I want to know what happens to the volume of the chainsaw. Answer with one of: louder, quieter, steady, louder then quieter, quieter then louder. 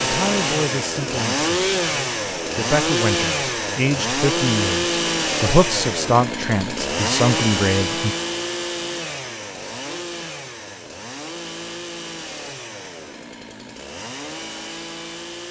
quieter.